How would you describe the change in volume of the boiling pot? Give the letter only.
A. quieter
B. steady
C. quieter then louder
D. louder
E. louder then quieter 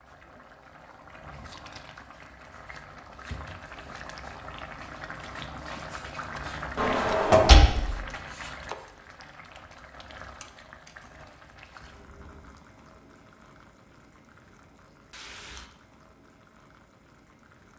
E.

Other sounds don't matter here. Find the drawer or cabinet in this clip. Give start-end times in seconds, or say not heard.
6.8-8.0.